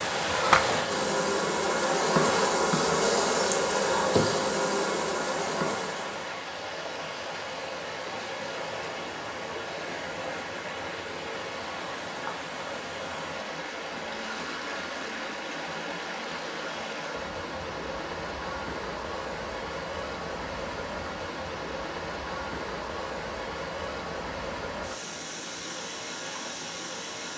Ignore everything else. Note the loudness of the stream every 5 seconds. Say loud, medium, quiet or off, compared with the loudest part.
loud, medium, medium, medium, medium, medium.